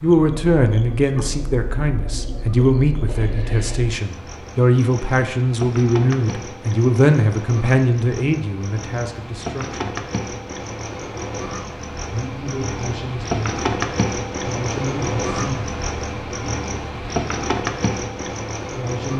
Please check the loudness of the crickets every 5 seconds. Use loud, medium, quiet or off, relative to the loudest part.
medium, medium, loud, loud.